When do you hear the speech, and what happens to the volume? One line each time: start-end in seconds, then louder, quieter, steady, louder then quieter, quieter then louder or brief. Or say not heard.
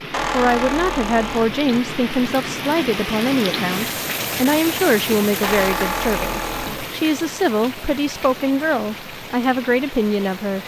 0.3-10.6 steady.